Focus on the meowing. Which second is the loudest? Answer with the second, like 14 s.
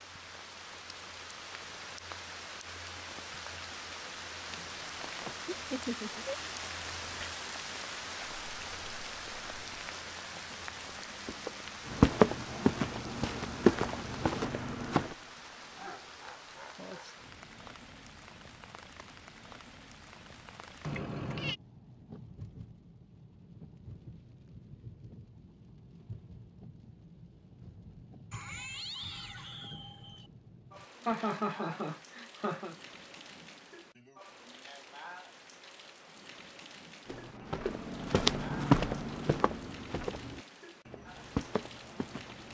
21 s.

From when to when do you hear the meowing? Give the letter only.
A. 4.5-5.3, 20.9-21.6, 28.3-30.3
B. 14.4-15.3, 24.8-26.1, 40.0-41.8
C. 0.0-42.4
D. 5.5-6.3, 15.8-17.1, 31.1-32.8
A.